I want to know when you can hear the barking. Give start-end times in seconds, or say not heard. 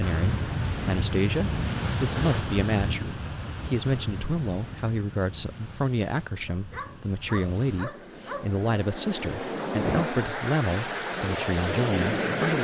6.5-8.5.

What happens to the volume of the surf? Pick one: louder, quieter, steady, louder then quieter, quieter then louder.
quieter then louder.